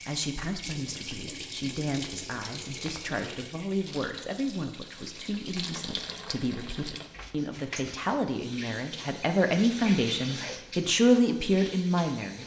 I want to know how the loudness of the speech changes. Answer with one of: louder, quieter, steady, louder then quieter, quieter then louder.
louder.